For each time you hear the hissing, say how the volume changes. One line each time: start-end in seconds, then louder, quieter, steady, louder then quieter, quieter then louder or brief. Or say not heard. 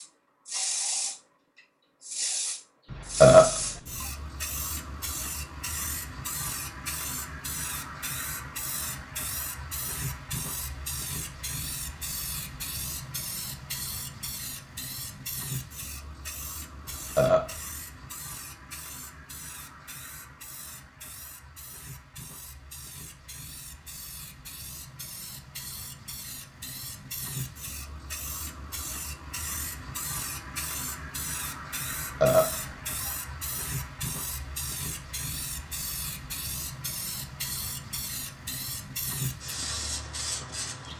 0.0-40.9 quieter then louder.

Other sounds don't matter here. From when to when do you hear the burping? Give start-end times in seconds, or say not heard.
2.9-3.6, 16.9-17.6, 31.9-33.1.